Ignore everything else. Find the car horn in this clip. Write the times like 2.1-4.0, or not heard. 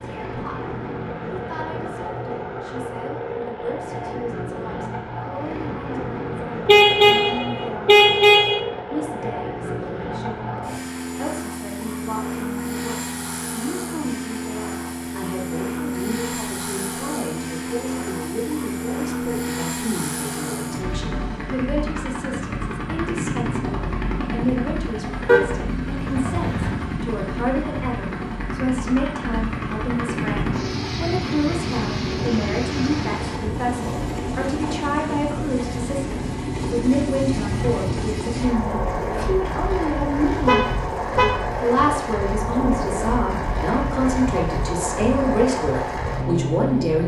6.7-8.6, 25.2-26.8, 40.5-41.4.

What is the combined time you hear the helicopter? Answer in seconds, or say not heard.
47 s.